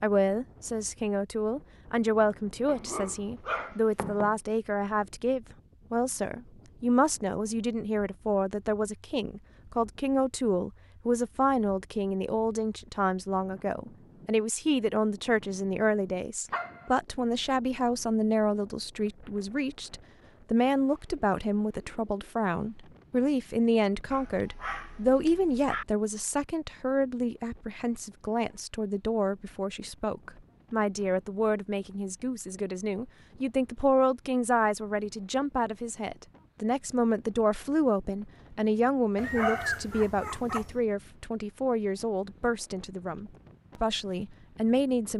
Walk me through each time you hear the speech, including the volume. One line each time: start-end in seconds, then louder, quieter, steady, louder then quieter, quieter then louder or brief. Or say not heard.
0.0-45.1 steady.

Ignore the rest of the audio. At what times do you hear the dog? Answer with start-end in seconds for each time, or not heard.
2.6-4.3, 16.5-16.9, 24.1-25.9, 39.1-40.8.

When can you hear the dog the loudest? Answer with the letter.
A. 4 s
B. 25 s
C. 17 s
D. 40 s
D.